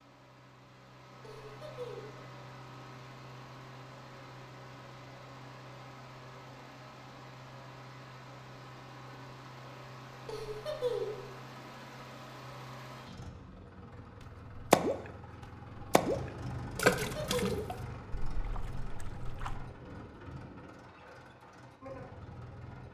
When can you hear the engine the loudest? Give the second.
17 s.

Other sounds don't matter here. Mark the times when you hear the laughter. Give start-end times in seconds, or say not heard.
1.2-2.2, 10.2-11.2, 16.9-17.7.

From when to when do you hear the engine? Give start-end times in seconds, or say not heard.
0.0-22.8.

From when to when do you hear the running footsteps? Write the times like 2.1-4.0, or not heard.
not heard.